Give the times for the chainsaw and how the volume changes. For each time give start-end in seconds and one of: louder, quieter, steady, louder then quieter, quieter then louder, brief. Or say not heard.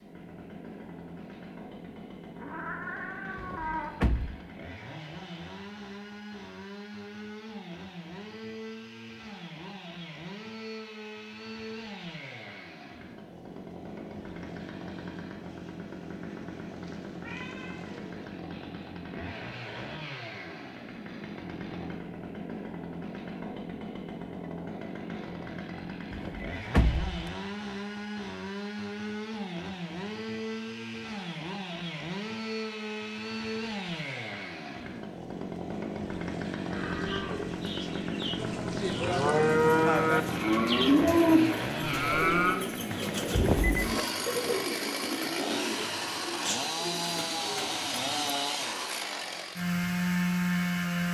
0.0-51.1 louder.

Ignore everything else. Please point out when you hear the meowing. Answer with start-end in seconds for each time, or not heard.
2.4-3.9, 17.2-18.1, 38.4-40.4.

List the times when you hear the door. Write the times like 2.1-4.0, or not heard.
3.4-4.4, 26.1-27.3, 43.4-44.0.